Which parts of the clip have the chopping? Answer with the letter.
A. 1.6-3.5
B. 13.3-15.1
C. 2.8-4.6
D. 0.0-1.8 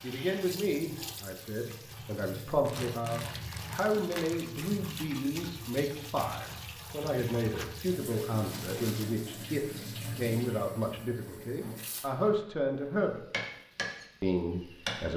B.